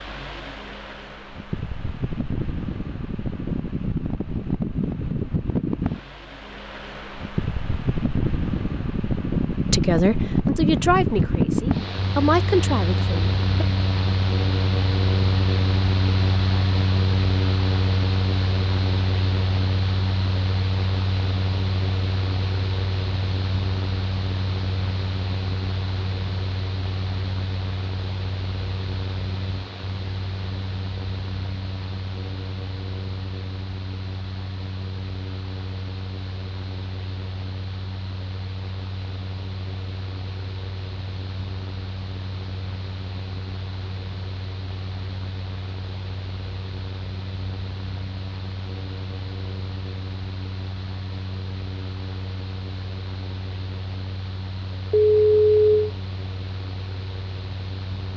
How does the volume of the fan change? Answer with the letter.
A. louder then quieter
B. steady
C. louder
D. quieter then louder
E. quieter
E.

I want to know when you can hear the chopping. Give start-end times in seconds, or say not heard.
not heard.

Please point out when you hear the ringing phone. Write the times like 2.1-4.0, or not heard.
54.9-55.9.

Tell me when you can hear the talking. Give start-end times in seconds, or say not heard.
9.7-13.7.